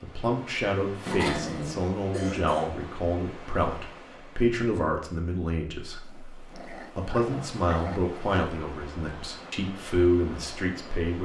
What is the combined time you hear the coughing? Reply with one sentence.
The coughing can be heard for 2 seconds in total.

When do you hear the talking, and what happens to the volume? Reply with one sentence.
The talking can be heard from 0.0 to 11.2 s, at a steady volume.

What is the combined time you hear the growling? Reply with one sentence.
The growling can be heard for 3 seconds in total.